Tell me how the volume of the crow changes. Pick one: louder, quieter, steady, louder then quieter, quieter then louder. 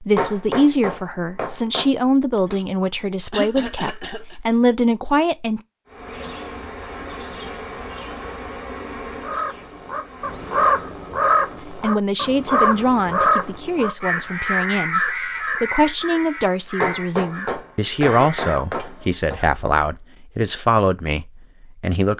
quieter.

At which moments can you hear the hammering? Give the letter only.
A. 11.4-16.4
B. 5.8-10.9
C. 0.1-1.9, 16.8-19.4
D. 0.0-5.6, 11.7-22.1
C.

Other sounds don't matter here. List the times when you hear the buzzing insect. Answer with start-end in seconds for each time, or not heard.
5.8-10.9.